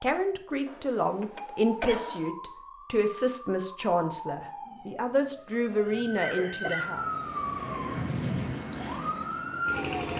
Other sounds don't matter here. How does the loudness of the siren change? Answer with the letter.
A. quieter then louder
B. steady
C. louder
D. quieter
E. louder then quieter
C.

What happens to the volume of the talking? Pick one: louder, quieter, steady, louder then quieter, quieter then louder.
steady.